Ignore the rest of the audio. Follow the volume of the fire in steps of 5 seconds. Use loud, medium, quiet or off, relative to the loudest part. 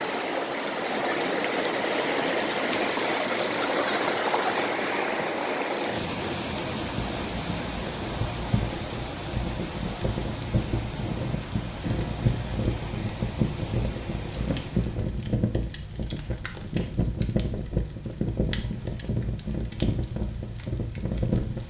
off, medium, loud, loud, loud.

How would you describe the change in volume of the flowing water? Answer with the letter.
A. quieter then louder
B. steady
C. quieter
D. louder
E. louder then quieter
C.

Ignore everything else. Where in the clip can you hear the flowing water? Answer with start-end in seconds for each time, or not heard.
0.0-15.2.